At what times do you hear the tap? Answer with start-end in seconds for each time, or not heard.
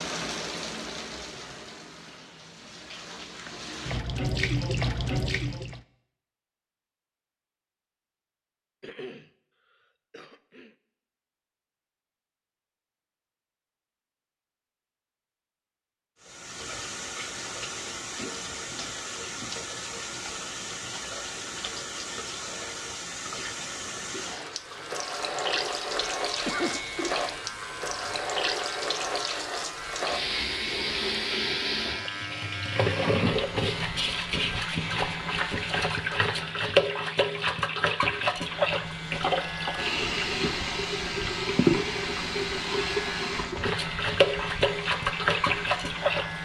0.0-5.8, 16.2-46.4.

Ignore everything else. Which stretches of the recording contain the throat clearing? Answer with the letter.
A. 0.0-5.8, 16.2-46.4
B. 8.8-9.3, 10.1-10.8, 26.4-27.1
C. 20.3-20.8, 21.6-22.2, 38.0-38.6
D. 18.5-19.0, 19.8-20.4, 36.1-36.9
B.